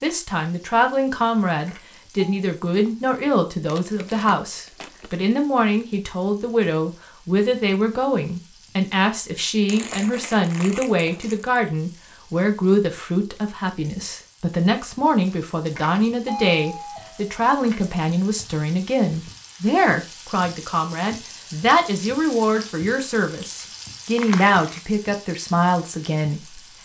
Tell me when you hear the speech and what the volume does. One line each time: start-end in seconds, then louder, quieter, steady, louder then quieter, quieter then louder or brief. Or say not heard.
0.0-26.6 steady.